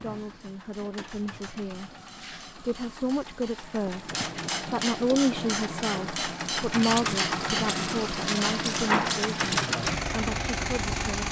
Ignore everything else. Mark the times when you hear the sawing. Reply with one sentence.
The sawing can't be heard in this clip.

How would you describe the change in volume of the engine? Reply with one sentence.
The volume of the engine goes up.